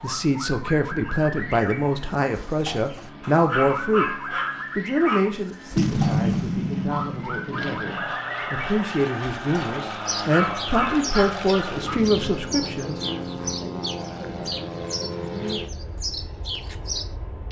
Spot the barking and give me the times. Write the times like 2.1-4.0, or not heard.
3.2-5.2, 10.2-12.0.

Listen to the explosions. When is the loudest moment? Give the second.
6 s.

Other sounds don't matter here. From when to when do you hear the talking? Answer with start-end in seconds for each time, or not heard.
0.0-4.2, 4.8-13.0.